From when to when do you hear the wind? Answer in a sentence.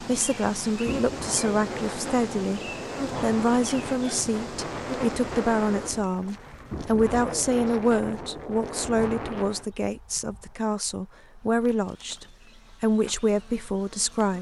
You can hear the wind from 0.0 to 9.7 s.